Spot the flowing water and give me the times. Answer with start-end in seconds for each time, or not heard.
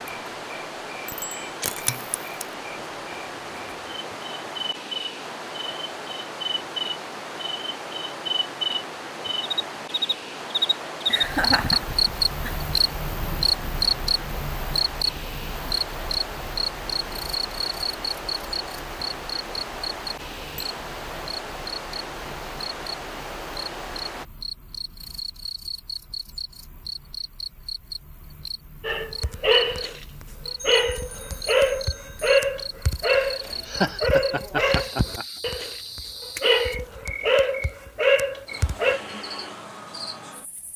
0.0-24.2.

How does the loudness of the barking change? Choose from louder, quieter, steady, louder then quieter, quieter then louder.
steady.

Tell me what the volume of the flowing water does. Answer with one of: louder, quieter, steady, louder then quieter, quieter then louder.
steady.